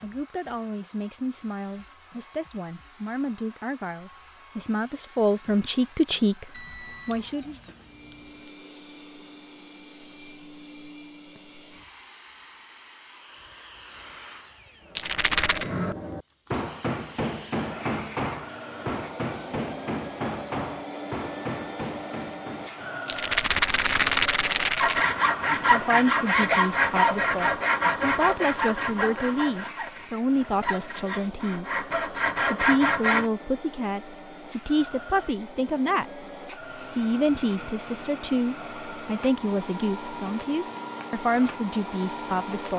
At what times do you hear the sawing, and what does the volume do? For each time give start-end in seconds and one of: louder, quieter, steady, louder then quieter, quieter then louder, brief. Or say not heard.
24.8-33.3 quieter then louder.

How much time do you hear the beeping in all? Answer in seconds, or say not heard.
2 s.